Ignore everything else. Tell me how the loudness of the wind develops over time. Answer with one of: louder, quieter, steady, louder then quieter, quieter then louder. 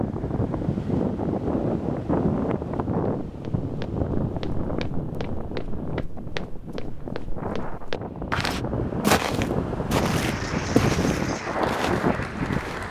quieter then louder.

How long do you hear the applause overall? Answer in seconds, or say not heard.
3 s.